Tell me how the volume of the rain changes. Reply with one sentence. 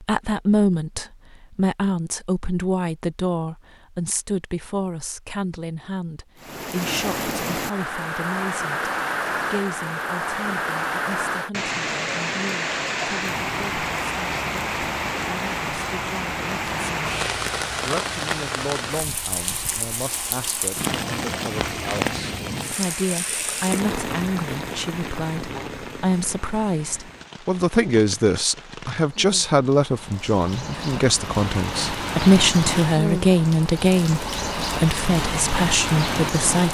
The volume of the rain goes down, then up.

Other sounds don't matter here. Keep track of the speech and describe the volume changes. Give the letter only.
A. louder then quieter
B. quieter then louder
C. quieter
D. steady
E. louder
B.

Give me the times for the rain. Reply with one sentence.
The rain can be heard from 6.4 to 36.6 s.